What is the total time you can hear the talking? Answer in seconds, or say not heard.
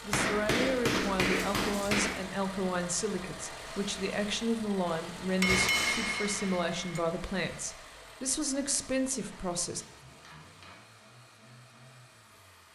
10 s.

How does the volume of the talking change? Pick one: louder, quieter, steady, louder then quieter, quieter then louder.
steady.